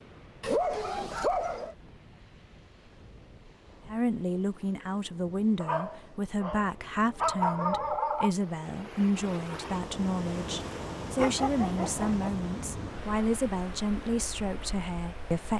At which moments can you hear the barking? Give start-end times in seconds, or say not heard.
0.4-1.8, 5.5-8.3, 11.2-12.3.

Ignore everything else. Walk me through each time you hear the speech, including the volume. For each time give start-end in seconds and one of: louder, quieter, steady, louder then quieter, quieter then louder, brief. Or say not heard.
3.9-15.5 steady.